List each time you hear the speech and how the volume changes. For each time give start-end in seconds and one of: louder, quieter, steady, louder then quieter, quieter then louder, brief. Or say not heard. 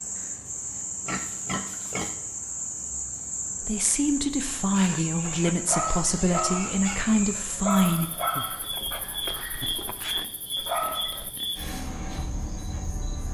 3.6-8.1 steady.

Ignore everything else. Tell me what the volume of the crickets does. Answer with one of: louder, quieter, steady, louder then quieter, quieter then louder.
steady.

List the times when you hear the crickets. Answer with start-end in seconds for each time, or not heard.
0.0-13.2.